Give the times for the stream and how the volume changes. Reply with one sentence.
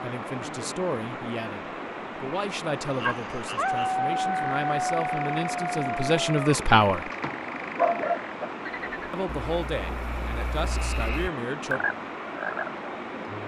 The stream can be heard from 0.0 to 13.4 s, at a steady volume.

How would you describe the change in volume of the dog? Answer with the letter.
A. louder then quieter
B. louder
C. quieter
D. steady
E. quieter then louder
E.